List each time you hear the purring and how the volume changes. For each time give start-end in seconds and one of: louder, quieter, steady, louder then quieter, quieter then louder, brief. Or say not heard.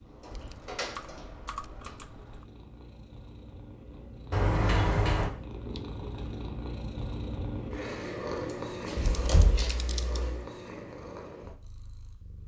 0.0-12.4 louder then quieter.